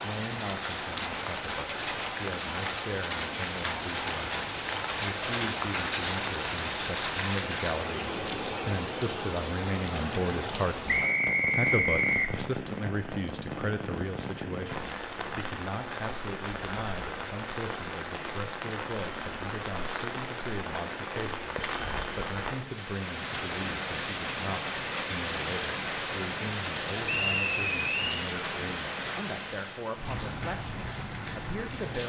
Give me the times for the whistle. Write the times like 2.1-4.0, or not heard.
10.8-12.3, 27.1-28.2.